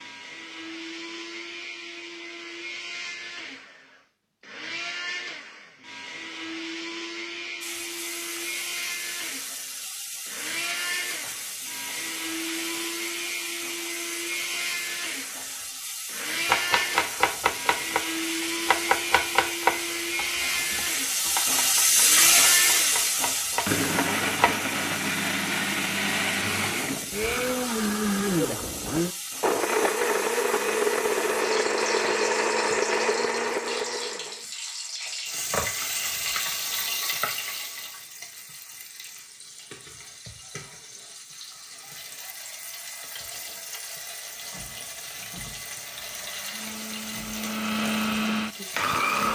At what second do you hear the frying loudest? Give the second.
22 s.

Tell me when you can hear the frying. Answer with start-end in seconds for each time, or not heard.
7.6-49.3.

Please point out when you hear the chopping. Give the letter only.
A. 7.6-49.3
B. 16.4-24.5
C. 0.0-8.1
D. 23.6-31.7
B.